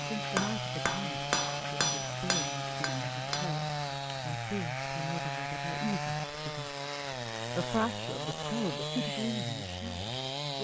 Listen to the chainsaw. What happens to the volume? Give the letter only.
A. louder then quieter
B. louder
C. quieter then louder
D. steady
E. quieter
D.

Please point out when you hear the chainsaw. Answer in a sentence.
The chainsaw can be heard from 0.0 to 10.6 s.